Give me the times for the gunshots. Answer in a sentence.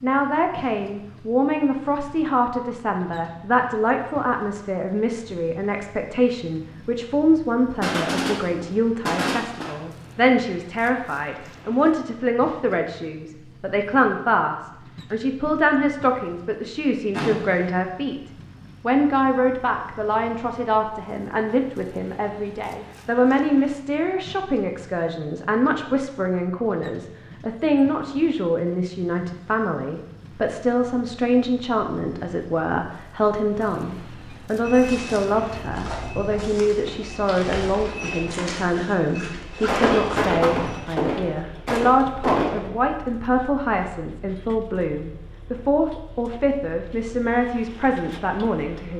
The gunshots can be heard from 7.8 to 9.8 s, from 17.1 to 17.7 s and from 39.6 to 42.8 s.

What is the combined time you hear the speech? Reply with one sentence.
You can hear the speech for 49 seconds altogether.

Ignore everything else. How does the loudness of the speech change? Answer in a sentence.
The loudness of the speech stays about the same.